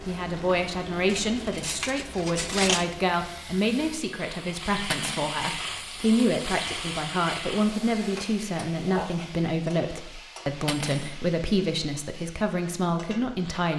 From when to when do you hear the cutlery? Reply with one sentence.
You can hear the cutlery from 1.1 to 2.9 s, from 4.9 to 5.4 s and from 10.7 to 11.2 s.